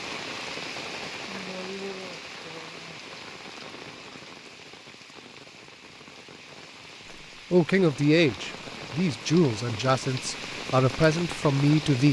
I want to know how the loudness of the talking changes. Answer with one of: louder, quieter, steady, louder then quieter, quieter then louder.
steady.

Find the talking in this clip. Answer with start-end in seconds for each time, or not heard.
7.5-12.0.